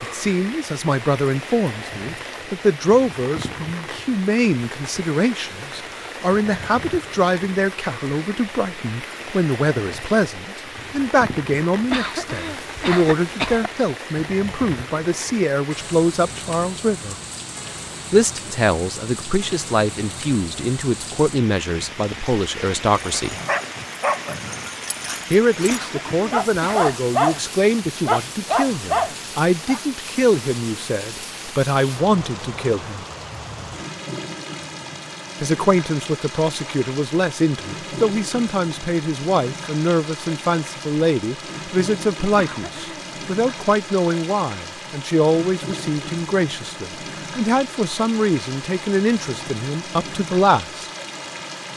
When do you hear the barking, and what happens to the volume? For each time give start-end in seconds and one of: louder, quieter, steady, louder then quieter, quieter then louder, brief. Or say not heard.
22.9-29.8 quieter then louder.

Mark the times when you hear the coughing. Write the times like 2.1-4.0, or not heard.
11.9-13.7, 25.6-26.9, 42.4-43.1.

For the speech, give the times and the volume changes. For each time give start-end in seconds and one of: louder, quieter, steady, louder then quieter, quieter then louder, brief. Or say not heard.
0.0-17.1 steady
18.1-23.4 steady
25.3-33.0 steady
35.4-50.9 steady.